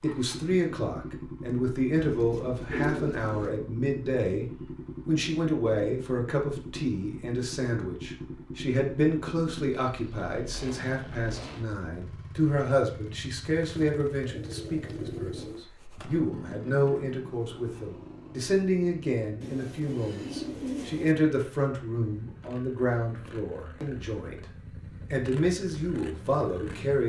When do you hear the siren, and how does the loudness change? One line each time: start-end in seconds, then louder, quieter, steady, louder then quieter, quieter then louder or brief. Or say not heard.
not heard.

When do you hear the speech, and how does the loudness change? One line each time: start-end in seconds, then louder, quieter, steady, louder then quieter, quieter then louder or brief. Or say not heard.
0.0-24.4 steady
25.1-27.0 brief.